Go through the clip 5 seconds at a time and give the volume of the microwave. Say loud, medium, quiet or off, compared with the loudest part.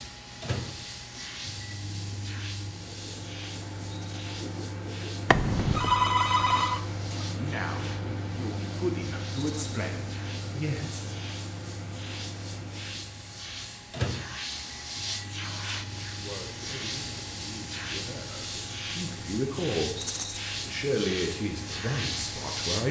loud, loud, loud, medium, medium.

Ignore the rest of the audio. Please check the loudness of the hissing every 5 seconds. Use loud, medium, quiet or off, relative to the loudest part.
medium, medium, medium, loud, loud.